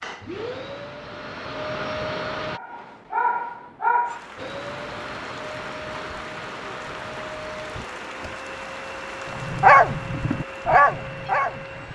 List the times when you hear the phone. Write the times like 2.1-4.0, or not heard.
not heard.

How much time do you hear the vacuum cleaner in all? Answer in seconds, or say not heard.
10 s.